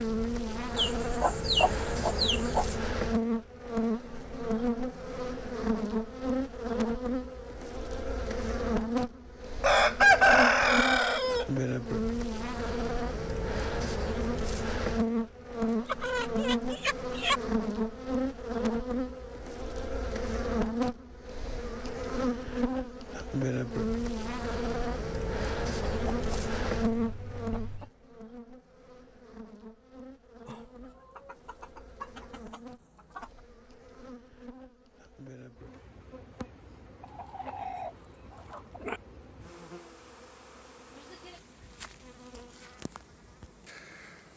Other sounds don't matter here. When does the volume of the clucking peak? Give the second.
10 s.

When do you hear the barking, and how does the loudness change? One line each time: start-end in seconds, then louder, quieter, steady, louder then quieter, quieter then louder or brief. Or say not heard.
not heard.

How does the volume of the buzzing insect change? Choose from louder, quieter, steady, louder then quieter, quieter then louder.
quieter.